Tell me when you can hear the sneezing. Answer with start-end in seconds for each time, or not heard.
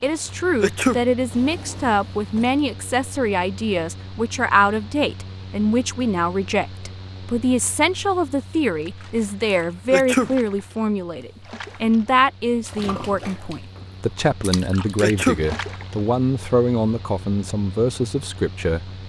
0.6-1.0, 9.9-10.3, 15.0-15.4.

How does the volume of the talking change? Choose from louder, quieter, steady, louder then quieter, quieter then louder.
steady.